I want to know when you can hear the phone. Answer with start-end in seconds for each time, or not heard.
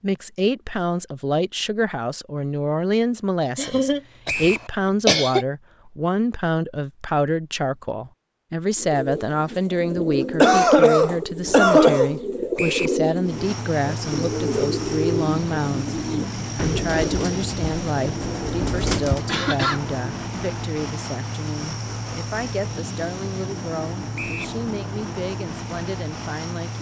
not heard.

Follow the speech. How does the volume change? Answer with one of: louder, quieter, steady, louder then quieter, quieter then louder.
quieter.